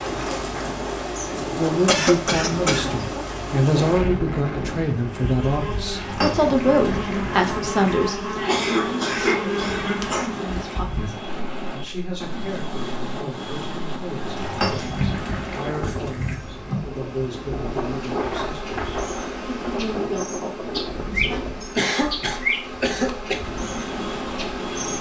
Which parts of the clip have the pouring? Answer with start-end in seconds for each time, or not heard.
6.0-8.0, 14.3-16.4.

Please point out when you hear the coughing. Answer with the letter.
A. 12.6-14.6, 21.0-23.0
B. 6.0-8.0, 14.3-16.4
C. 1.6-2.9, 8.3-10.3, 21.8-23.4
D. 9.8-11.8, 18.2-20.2
C.